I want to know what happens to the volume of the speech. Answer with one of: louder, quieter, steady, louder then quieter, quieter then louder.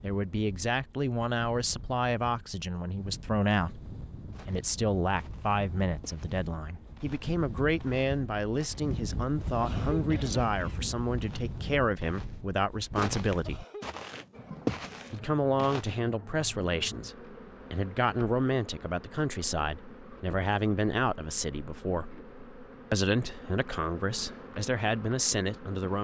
steady.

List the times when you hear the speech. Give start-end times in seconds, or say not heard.
0.0-13.7, 15.1-22.1, 22.9-25.9.